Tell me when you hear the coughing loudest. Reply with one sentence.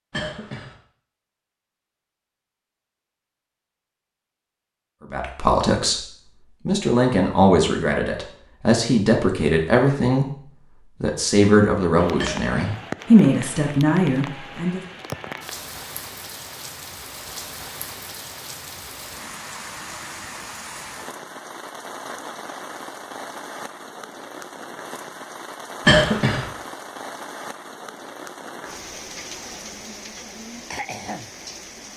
The loudest moment of the coughing is at 26 seconds.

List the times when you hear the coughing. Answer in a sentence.
The coughing can be heard from 0.1 to 0.8 s, from 12.2 to 12.8 s and from 25.9 to 26.4 s.